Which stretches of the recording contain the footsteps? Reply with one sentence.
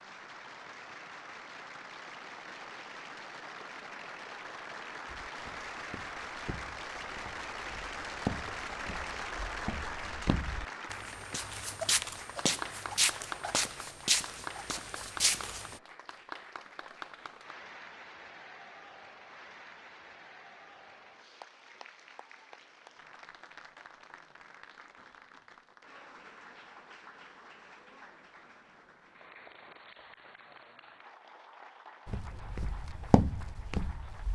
You can hear the footsteps from 5.0 to 15.8 s and from 32.0 to 34.2 s.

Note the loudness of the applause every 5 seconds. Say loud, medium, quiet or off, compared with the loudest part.
medium, loud, loud, medium, quiet, quiet, quiet.